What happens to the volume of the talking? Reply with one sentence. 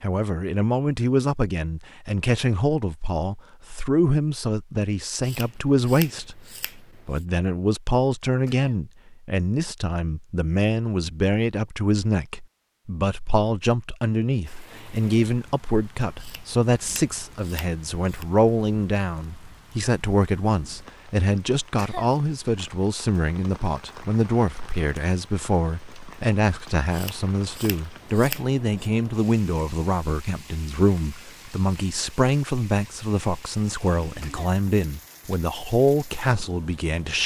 The loudness of the talking stays about the same.